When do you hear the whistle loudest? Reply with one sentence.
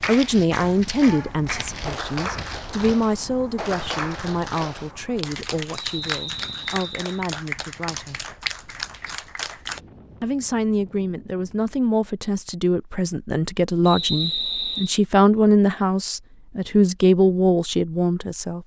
The volume of the whistle peaks at 14 seconds.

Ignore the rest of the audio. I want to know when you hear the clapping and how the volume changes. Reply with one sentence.
You can hear the clapping from 0.0 to 9.8 s, at a steady volume.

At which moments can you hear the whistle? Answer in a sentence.
You can hear the whistle from 6.0 to 7.2 s and from 13.8 to 15.0 s.